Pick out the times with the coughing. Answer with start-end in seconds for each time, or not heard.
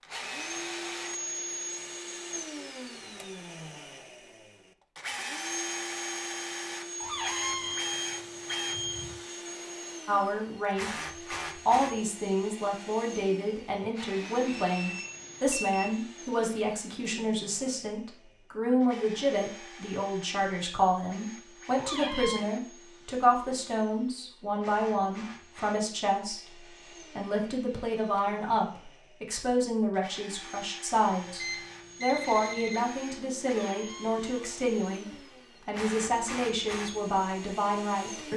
not heard.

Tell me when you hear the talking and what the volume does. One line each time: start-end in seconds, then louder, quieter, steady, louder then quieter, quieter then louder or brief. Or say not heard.
10.1-38.3 steady.